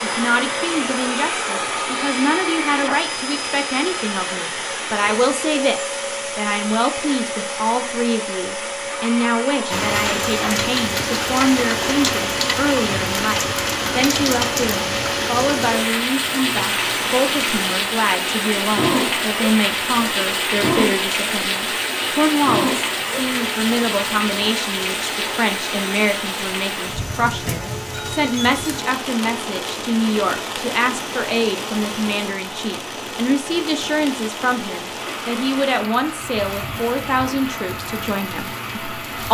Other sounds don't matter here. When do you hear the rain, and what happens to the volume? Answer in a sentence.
You can hear the rain from 9.7 to 39.2 s, getting quieter.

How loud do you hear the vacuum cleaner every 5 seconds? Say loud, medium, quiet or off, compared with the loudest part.
loud, loud, loud, loud, loud, medium, medium, medium.